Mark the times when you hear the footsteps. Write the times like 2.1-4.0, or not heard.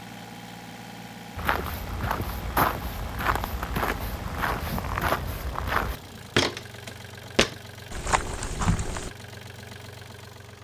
1.4-9.1.